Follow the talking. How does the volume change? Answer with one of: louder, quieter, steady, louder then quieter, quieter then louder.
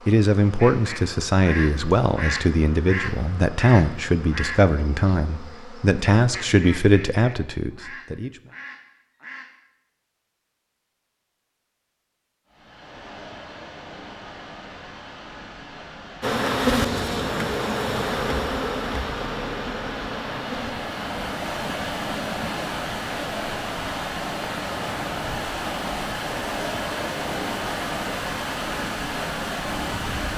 steady.